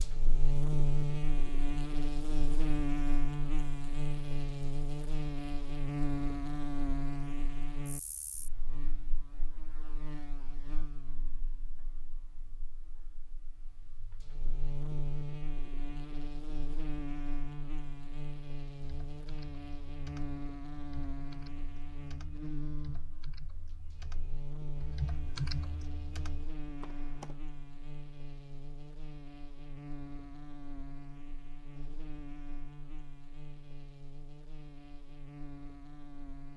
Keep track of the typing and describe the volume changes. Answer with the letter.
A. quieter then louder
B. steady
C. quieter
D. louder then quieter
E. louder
E.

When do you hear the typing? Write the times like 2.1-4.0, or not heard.
18.8-27.4.